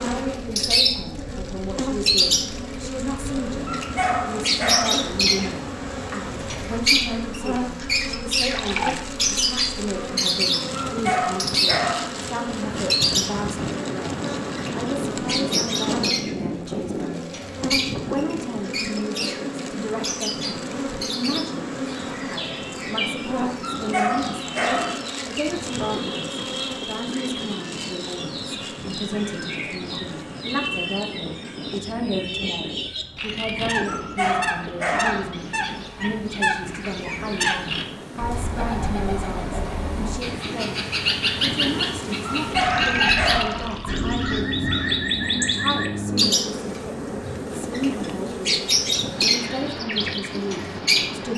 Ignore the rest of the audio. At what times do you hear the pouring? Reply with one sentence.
You can hear the pouring from 8.3 to 9.0 s and from 42.5 to 44.2 s.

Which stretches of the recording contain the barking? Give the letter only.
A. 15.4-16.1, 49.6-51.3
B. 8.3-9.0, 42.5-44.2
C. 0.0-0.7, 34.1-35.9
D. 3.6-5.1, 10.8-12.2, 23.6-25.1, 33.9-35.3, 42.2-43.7
D.